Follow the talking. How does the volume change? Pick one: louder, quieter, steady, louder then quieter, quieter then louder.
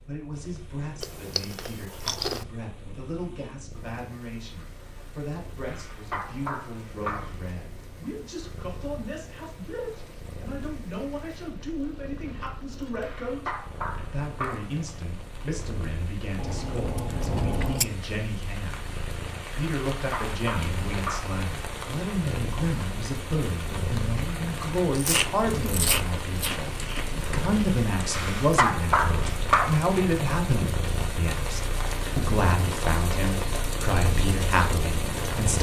louder.